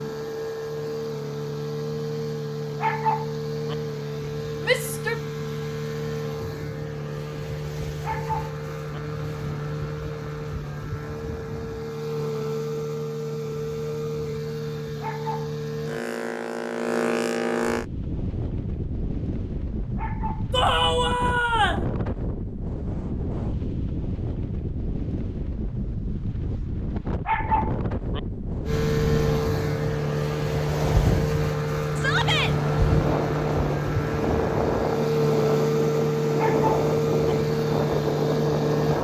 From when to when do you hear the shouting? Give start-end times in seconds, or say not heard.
4.7-5.2, 20.5-21.9, 31.9-32.5.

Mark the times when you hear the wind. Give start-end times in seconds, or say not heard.
17.6-39.0.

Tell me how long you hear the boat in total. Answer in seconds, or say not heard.
28 s.